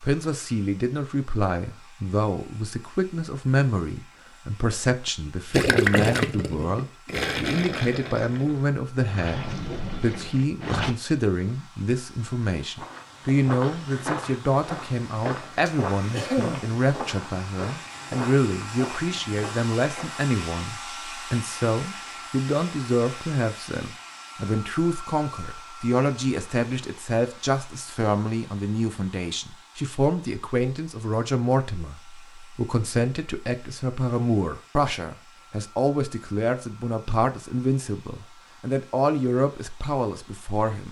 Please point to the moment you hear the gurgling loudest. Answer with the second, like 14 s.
6 s.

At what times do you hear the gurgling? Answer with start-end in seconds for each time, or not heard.
5.5-10.9.